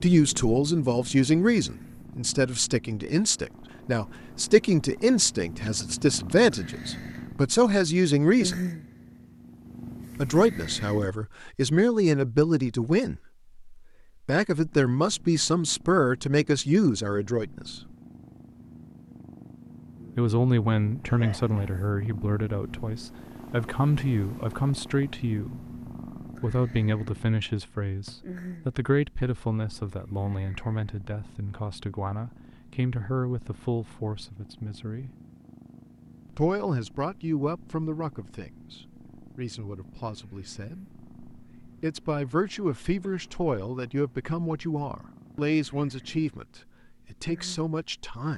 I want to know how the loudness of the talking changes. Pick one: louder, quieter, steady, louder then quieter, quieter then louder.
quieter.